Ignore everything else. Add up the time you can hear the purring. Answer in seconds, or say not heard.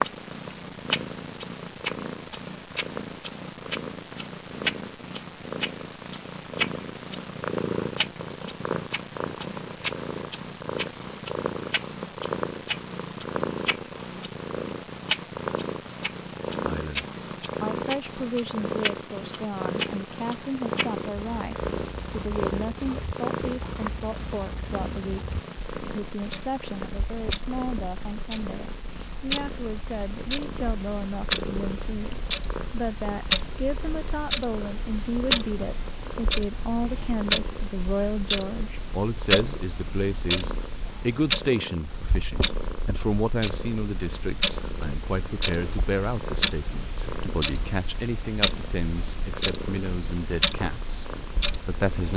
52 s.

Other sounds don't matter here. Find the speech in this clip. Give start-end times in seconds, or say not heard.
16.6-52.1.